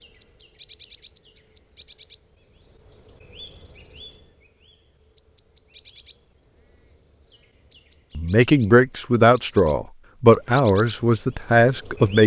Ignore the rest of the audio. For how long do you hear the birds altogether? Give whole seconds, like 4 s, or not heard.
12 s.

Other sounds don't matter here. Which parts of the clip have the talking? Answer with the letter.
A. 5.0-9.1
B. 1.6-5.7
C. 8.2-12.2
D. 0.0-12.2
C.